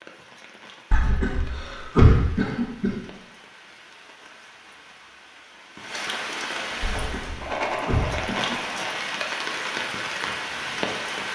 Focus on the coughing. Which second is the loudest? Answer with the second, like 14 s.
2 s.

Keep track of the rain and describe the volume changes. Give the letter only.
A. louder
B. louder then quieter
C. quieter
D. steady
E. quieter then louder
A.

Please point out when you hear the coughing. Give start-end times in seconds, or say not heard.
0.9-2.9, 6.8-8.8.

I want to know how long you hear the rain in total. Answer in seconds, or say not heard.
11 s.